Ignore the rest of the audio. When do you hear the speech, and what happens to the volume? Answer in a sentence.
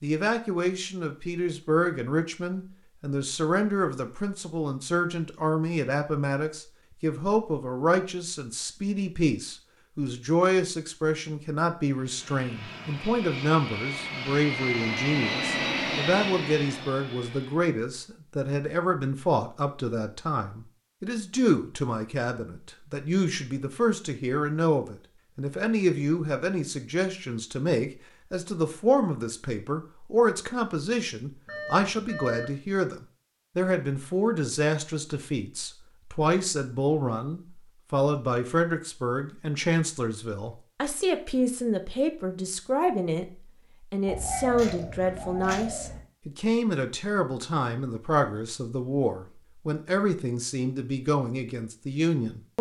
The speech can be heard from 0.0 to 43.2 s, at a steady volume; and from 43.9 to 52.5 s, at a steady volume.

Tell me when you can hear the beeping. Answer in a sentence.
The beeping can be heard from 31.4 to 32.6 s.